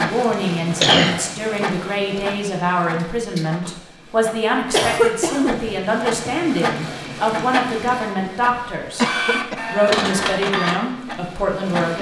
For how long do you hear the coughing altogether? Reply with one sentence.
The coughing can be heard for 2 seconds in total.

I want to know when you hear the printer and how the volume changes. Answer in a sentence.
The printer can be heard from 0.0 to 11.9 s, getting quieter then louder.